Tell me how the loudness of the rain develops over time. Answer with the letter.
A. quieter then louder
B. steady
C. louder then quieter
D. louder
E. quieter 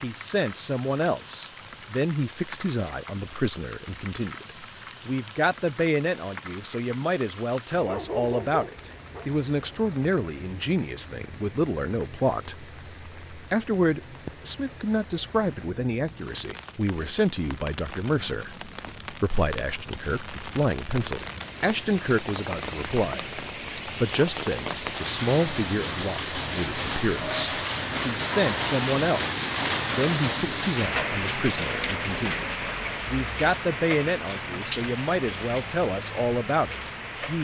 D.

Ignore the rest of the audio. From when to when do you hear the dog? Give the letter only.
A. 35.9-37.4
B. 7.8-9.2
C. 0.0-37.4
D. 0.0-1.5
B.